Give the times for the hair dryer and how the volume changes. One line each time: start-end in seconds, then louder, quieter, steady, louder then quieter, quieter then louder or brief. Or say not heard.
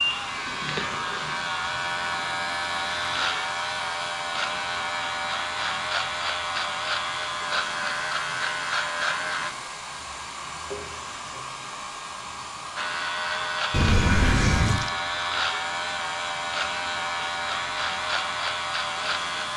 0.0-19.5 steady.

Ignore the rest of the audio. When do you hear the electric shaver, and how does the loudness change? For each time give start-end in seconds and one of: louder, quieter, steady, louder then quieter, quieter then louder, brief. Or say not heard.
0.0-9.5 steady
12.8-19.5 steady.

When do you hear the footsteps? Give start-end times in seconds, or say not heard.
not heard.